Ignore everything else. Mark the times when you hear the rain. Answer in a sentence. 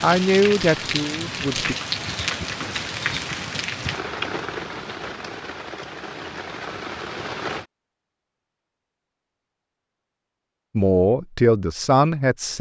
You can hear the rain from 0.0 to 7.7 s.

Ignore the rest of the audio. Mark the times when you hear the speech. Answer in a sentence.
You can hear the speech from 0.0 to 1.8 s and from 10.8 to 12.5 s.